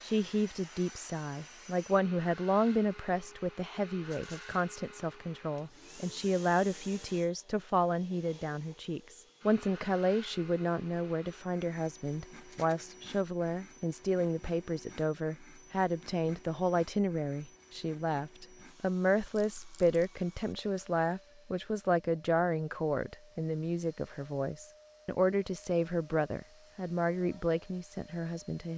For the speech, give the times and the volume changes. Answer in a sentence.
The speech can be heard from 0.0 to 28.7 s, at a steady volume.